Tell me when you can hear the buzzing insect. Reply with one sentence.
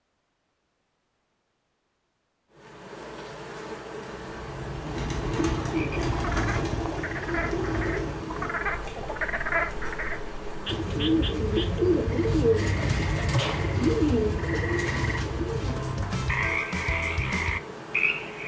You can hear the buzzing insect from 2.5 to 18.4 s.